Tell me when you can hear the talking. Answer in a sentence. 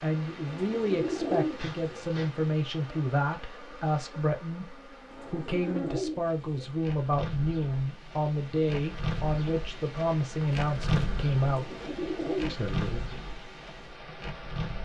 The talking can be heard from 0.0 to 11.7 s and from 12.4 to 13.2 s.